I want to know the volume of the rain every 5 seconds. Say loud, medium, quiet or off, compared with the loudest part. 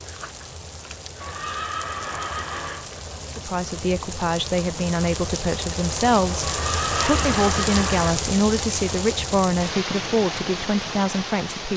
medium, loud, loud.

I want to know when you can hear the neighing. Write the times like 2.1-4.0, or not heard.
1.2-2.9, 6.4-8.2.